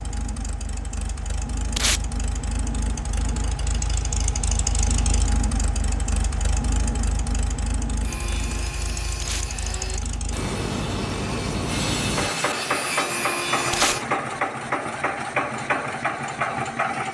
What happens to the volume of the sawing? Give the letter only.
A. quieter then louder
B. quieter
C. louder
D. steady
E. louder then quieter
C.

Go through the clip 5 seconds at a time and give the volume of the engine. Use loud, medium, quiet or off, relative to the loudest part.
medium, medium, loud, loud.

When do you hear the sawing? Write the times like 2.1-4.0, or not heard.
8.0-14.1.